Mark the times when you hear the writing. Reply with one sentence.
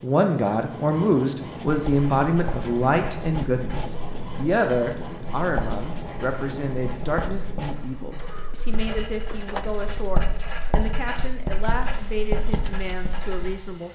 You can hear the writing from 1.9 to 13.6 s.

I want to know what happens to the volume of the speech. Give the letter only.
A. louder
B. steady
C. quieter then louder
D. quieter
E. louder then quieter
D.